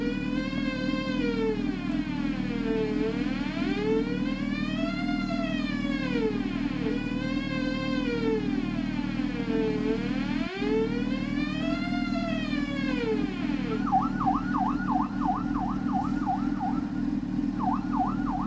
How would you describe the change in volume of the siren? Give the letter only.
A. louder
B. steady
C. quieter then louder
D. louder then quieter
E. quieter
B.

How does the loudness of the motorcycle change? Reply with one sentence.
The volume of the motorcycle stays about the same.